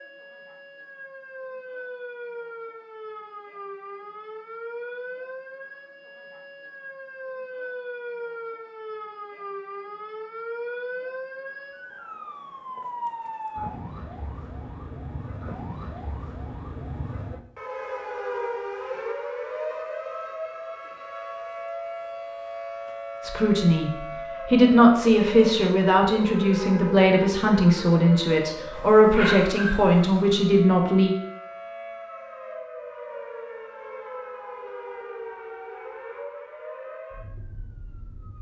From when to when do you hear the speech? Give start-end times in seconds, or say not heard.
23.2-31.1.